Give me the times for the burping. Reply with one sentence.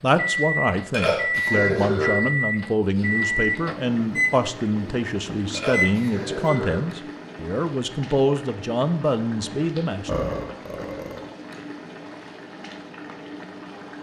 You can hear the burping from 0.9 to 2.1 s, from 5.5 to 6.8 s and from 10.1 to 11.2 s.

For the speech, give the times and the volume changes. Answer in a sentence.
The speech can be heard from 0.0 to 10.3 s, at a steady volume.